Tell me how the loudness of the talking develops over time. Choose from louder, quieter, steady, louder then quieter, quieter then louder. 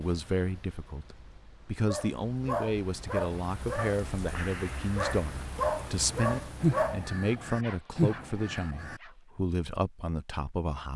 steady.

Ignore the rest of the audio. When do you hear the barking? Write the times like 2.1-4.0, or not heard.
1.9-9.2.